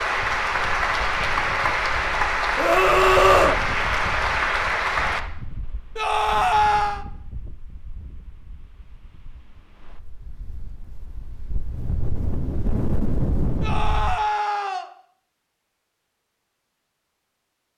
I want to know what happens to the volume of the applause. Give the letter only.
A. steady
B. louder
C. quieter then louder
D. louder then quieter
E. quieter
A.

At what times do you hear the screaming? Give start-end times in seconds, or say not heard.
2.5-3.6, 6.0-7.0, 13.6-14.8.